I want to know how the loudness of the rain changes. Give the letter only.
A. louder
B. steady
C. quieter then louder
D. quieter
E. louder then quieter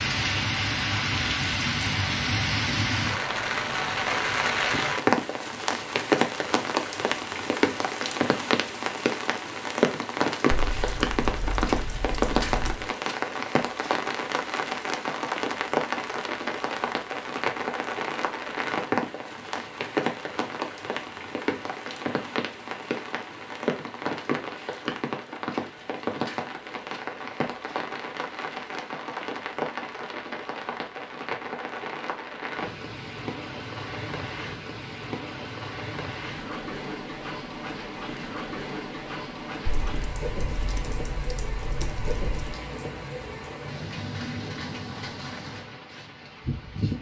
D.